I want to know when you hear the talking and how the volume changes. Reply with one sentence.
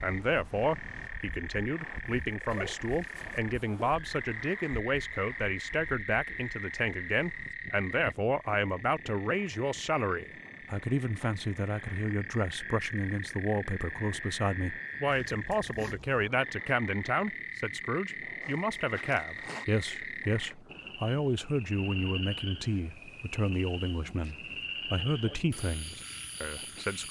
The talking can be heard from 0.0 to 27.0 s, at a steady volume.